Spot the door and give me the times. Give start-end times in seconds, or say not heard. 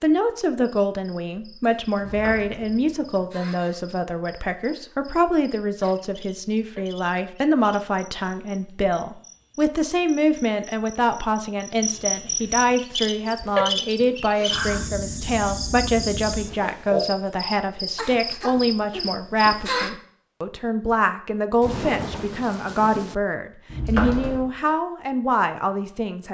1.9-3.2, 23.7-24.5.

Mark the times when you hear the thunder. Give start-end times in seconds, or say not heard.
21.6-23.1.